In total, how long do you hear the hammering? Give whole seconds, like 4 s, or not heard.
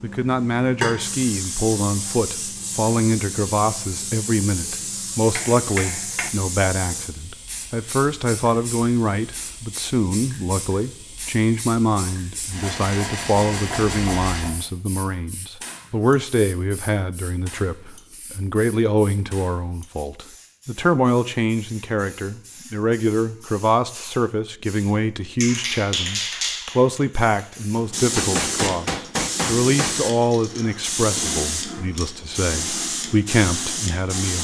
3 s.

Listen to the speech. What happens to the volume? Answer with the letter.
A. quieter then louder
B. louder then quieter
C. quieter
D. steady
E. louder
D.